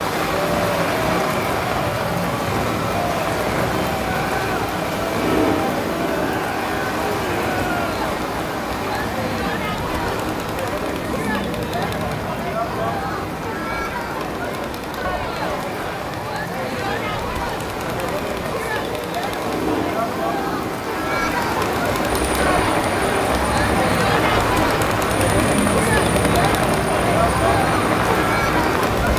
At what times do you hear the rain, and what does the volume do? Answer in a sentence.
You can hear the rain from 0.0 to 29.1 s, getting quieter then louder.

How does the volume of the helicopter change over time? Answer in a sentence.
The volume of the helicopter stays about the same.